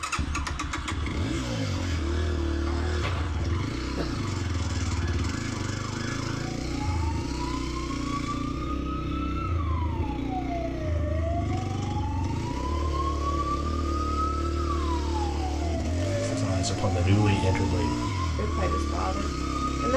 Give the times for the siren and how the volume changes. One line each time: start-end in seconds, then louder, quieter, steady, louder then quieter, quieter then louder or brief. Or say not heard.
0.0-19.9 louder.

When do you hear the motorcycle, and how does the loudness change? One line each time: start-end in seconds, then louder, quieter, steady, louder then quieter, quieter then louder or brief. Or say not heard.
0.0-19.9 steady.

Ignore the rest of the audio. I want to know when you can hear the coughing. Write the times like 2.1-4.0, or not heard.
2.6-4.1.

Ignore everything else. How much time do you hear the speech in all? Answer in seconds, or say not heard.
4 s.